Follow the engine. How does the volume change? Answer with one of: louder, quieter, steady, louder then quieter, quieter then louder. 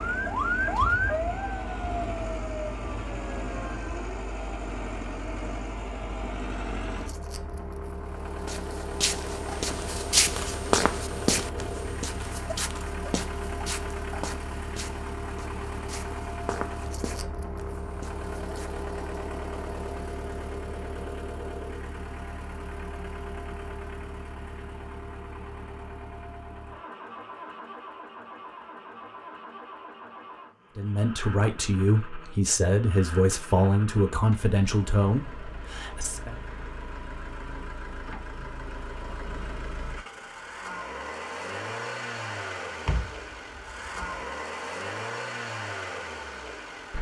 quieter then louder.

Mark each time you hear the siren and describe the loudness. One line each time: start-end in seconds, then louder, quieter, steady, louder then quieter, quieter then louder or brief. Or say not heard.
0.0-4.2 quieter.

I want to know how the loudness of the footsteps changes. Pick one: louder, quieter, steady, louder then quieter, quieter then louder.
quieter.